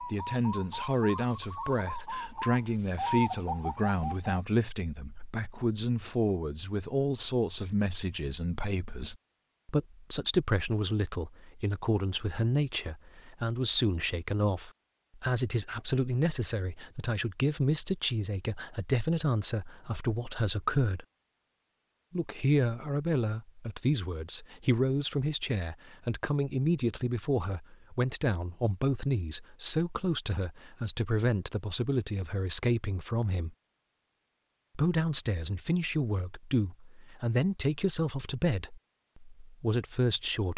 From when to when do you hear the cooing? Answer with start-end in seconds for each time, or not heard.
0.0-4.5.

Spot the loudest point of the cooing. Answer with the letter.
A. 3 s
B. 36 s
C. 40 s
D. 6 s
A.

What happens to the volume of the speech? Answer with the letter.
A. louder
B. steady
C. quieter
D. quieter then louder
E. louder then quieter
B.